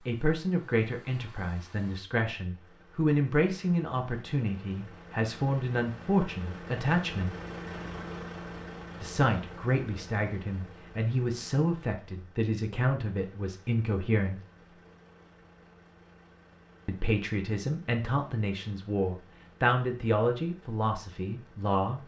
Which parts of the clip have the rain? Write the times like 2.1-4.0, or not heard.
not heard.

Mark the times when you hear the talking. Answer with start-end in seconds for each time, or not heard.
0.1-7.3, 9.0-14.4, 16.9-22.0.